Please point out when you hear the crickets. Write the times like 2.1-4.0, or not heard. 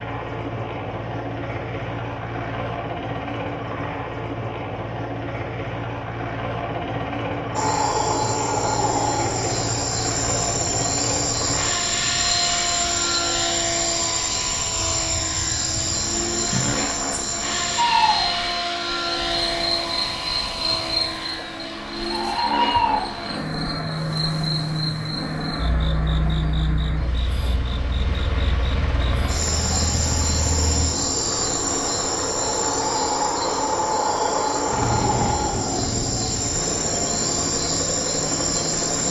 7.5-39.0.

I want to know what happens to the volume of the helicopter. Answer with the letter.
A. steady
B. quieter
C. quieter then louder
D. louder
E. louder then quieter
A.